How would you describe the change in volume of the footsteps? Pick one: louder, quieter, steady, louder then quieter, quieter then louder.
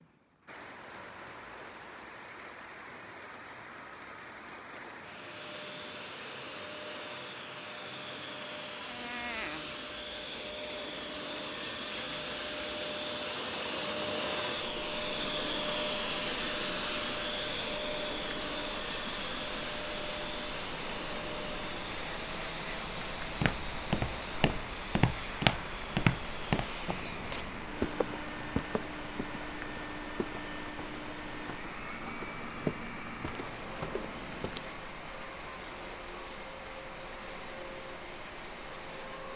quieter then louder.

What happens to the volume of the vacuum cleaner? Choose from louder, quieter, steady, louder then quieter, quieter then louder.
louder then quieter.